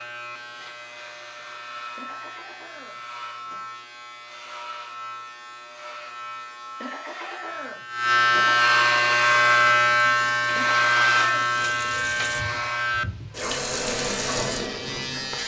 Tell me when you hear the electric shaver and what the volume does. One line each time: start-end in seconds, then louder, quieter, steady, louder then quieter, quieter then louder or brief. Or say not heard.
0.0-15.4 louder then quieter.